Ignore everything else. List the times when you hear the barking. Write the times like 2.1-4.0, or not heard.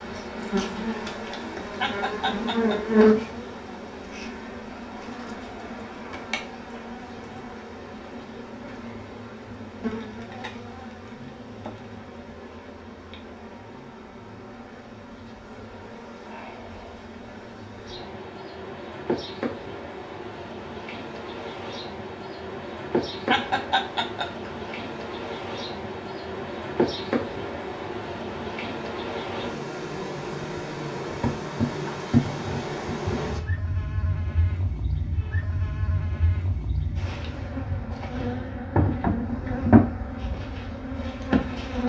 not heard.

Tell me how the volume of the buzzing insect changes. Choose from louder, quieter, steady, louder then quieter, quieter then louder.
quieter then louder.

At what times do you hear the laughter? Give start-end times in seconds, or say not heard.
1.8-3.0, 23.2-24.5.